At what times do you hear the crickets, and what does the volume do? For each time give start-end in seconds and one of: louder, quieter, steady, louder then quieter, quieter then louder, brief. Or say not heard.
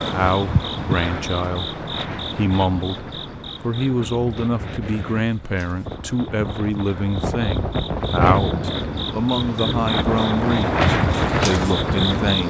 0.0-12.4 quieter then louder.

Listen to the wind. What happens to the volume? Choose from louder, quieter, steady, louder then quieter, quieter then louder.
louder.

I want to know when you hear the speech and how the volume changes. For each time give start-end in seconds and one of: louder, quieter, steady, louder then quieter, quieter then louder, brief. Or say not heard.
0.0-12.4 steady.